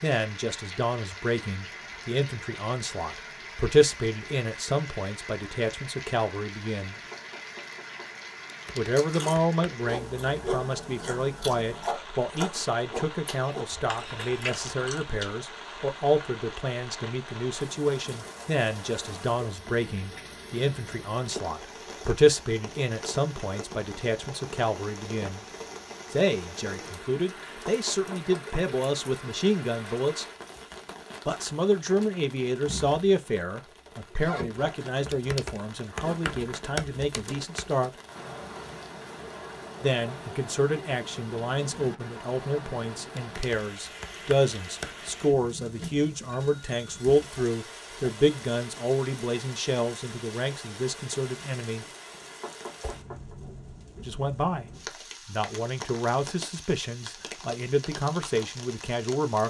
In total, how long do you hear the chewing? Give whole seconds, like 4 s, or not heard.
6 s.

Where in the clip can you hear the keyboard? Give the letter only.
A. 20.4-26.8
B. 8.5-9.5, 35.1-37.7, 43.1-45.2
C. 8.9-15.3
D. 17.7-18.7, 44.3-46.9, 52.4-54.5
B.